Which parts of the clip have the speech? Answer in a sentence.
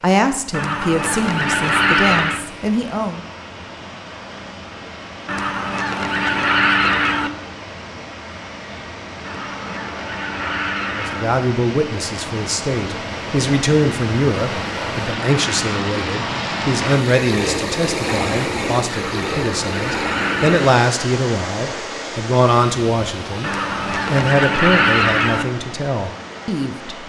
You can hear the speech from 0.0 to 3.2 s and from 10.9 to 27.0 s.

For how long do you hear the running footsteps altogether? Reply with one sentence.
The running footsteps can't be heard in this clip.